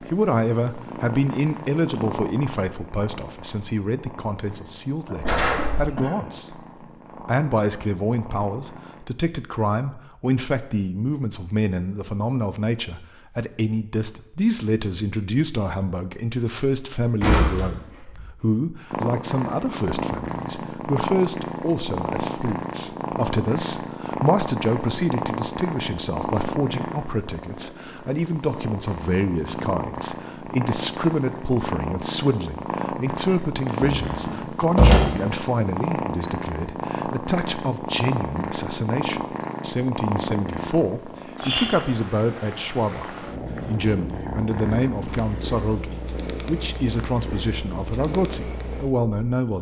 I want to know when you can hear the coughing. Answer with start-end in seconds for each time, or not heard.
5.0-6.2.